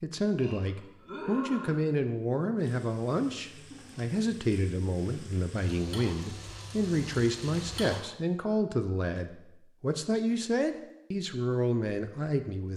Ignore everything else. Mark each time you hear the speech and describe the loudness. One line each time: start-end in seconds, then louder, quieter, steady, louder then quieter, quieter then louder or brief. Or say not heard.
0.0-12.7 steady.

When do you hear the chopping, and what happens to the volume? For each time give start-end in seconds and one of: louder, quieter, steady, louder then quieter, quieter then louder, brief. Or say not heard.
not heard.